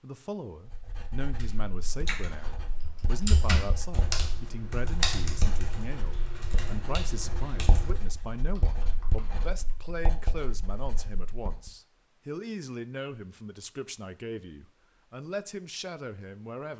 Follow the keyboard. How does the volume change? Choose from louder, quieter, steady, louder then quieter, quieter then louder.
quieter.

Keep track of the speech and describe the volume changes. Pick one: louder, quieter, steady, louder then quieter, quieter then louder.
steady.